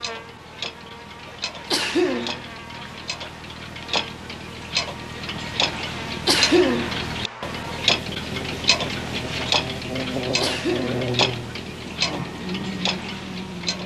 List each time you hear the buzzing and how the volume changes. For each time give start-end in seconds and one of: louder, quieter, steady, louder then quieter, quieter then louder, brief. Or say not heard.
0.0-13.8 louder.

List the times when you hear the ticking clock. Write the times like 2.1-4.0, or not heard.
0.0-13.8.